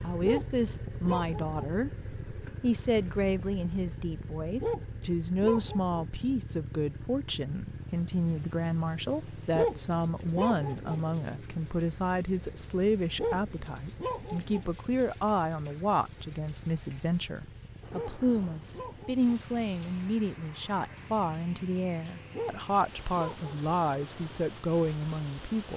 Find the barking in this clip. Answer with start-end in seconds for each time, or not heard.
0.2-1.6, 4.6-6.0, 9.5-11.0, 13.2-14.7, 17.9-19.2, 22.3-23.6.